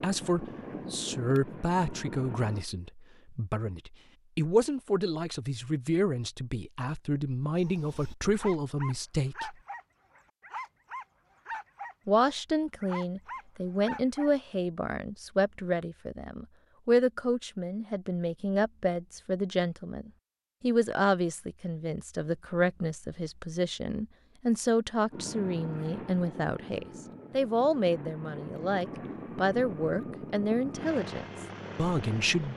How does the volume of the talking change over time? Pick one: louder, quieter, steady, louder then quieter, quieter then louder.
steady.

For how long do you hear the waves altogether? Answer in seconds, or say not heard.
not heard.